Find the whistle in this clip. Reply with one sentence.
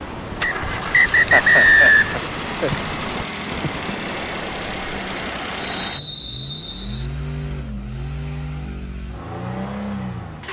The whistle can be heard from 0.4 to 2.1 s and from 5.7 to 7.1 s.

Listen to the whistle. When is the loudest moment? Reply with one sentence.
The volume of the whistle peaks at 2 seconds.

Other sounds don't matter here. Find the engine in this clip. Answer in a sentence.
The engine can be heard from 0.0 to 10.4 s.